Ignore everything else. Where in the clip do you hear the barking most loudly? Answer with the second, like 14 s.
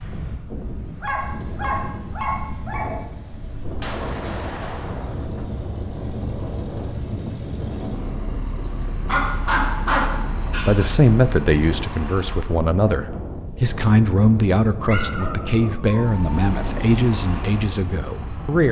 10 s.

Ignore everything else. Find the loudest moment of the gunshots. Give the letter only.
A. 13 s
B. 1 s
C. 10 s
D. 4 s
D.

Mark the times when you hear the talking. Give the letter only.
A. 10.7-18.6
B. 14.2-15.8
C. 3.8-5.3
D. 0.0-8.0
A.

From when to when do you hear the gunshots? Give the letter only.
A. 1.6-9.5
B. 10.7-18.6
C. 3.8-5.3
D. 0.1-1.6
C.